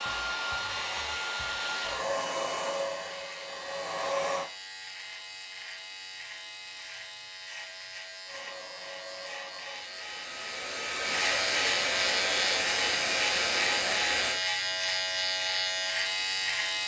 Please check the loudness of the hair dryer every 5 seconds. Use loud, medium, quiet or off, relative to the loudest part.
loud, quiet, loud, off.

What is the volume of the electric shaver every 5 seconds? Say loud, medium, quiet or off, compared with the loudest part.
quiet, quiet, loud, loud.